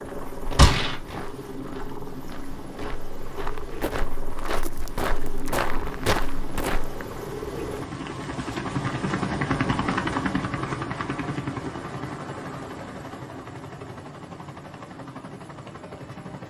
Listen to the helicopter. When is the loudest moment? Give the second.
10 s.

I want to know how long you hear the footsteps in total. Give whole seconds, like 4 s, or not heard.
7 s.